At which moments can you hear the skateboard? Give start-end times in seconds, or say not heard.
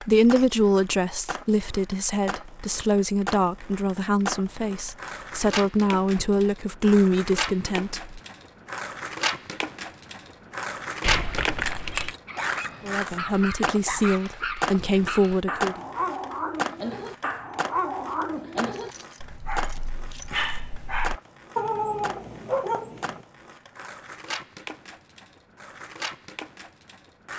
0.0-27.3.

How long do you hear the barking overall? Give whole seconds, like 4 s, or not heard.
11 s.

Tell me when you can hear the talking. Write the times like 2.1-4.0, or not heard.
0.0-8.2, 12.8-15.8.